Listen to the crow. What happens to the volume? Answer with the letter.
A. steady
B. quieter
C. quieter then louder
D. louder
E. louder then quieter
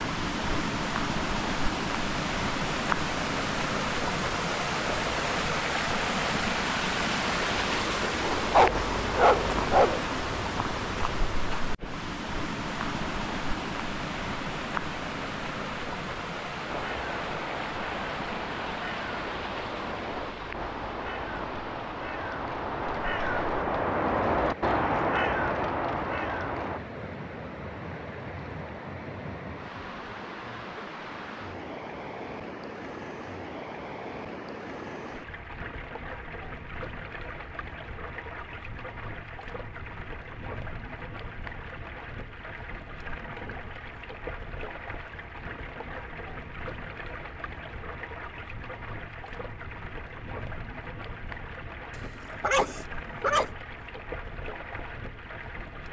D.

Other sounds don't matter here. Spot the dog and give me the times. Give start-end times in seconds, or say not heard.
8.5-10.0, 52.0-53.5.